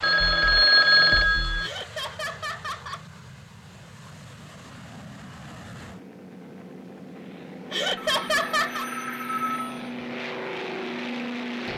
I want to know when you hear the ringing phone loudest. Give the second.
1 s.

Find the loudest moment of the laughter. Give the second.
8 s.